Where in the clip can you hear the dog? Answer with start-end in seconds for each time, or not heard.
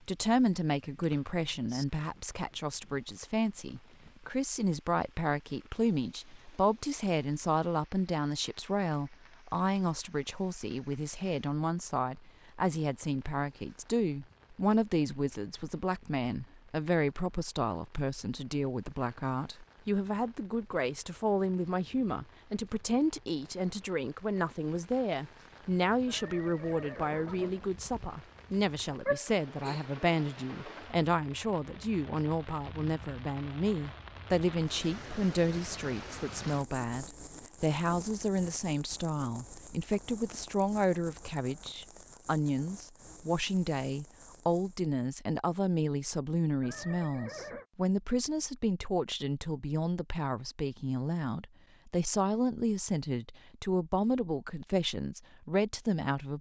29.1-29.8.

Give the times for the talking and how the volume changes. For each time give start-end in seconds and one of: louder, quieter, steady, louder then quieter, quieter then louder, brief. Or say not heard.
0.1-56.3 steady.